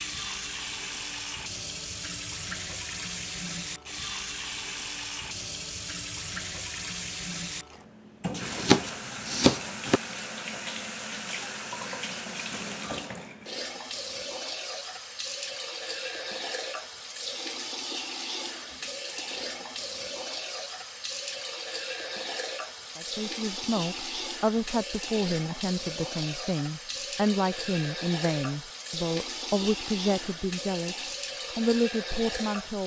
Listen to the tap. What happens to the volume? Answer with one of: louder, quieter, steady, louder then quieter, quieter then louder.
steady.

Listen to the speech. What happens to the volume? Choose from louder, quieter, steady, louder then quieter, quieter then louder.
steady.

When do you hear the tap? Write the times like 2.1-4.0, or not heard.
0.0-32.8.